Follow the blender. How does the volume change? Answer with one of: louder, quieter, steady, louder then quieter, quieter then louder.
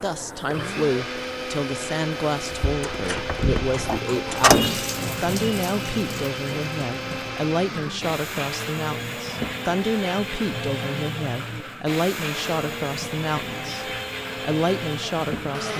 steady.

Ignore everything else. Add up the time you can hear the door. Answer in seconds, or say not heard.
2 s.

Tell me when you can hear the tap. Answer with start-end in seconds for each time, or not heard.
0.0-15.7.